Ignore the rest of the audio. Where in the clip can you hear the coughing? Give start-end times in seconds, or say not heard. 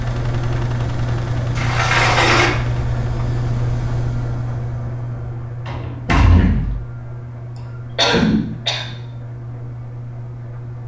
8.0-8.8.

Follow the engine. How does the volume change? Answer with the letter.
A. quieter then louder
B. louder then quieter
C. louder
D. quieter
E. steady
D.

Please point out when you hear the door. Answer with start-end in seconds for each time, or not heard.
1.6-2.5, 5.7-6.8.